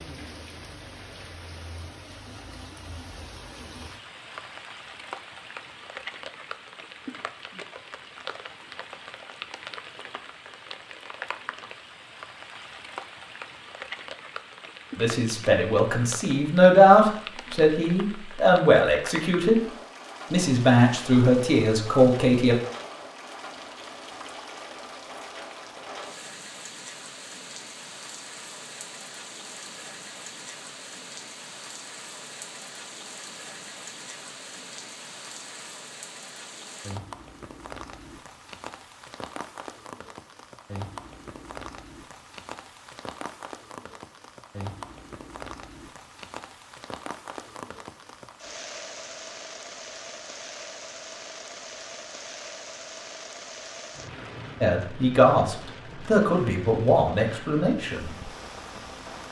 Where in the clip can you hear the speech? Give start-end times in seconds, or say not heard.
14.9-19.7, 20.3-22.6, 54.6-58.1.